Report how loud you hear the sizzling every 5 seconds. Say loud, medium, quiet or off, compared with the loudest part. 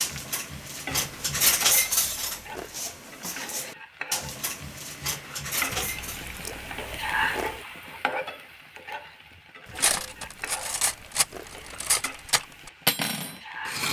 medium, loud, medium.